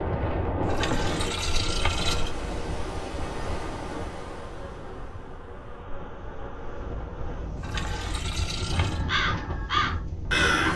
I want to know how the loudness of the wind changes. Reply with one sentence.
The loudness of the wind goes down, then up.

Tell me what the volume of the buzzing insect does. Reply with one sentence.
The loudness of the buzzing insect stays about the same.